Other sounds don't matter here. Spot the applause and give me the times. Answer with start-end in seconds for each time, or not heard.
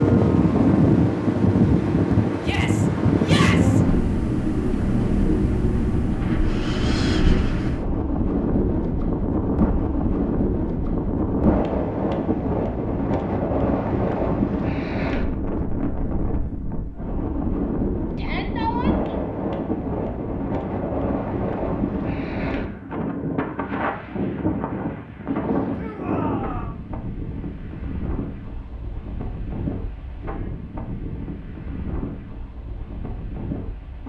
not heard.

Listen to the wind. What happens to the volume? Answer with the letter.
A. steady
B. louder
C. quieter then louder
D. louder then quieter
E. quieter
E.